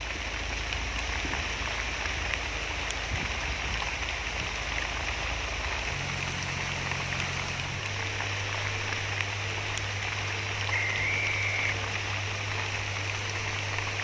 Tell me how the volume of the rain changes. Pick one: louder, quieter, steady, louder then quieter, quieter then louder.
steady.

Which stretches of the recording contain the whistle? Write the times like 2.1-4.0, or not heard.
10.7-11.8.